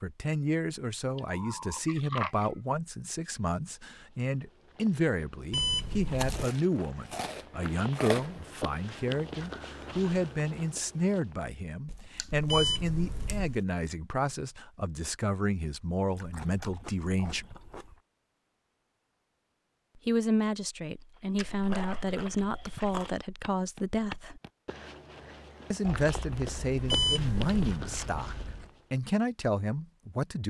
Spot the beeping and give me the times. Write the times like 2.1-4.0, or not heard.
5.5-6.5, 12.4-13.6, 26.9-27.7.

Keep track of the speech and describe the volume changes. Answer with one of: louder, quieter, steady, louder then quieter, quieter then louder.
steady.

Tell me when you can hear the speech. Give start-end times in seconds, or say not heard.
0.0-17.6, 19.9-24.4, 25.7-30.4.